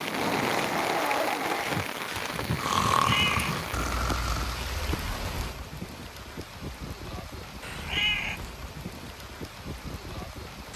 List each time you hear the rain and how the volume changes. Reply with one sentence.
The rain can be heard from 0.0 to 10.7 s, getting quieter.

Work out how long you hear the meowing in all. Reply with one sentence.
You can hear the meowing for 2 seconds altogether.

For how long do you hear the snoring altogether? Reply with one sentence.
The snoring can be heard for 5 seconds in total.